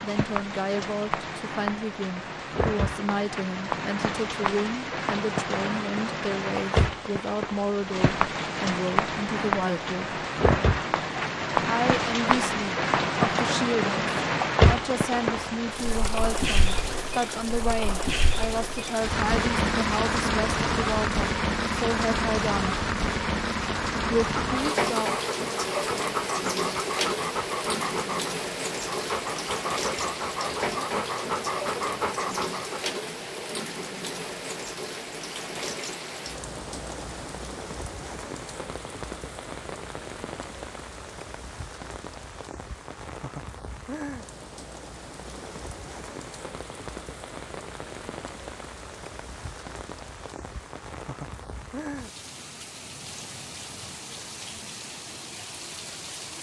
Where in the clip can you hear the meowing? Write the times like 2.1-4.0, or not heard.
not heard.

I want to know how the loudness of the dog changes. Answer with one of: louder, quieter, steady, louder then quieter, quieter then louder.
steady.